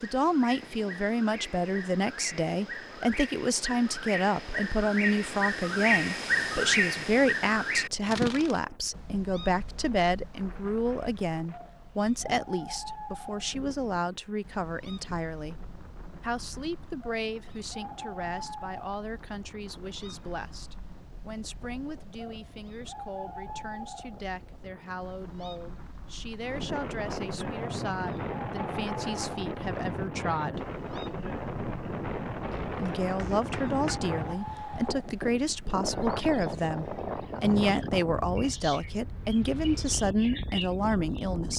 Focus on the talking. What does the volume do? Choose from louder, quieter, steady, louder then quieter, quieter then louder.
quieter then louder.